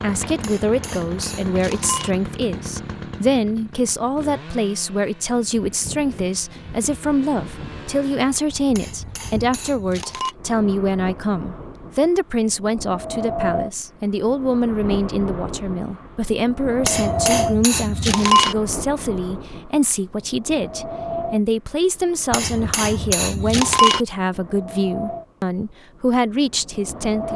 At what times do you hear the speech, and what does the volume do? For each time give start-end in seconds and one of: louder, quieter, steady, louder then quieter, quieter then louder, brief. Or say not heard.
0.0-27.3 steady.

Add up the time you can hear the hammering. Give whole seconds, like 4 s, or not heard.
7 s.